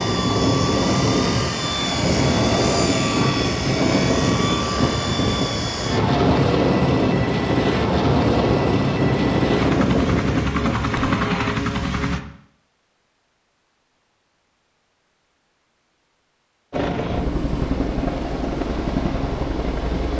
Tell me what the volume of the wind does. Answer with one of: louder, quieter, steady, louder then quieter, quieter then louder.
steady.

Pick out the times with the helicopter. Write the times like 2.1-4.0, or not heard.
0.0-12.2, 16.7-20.1.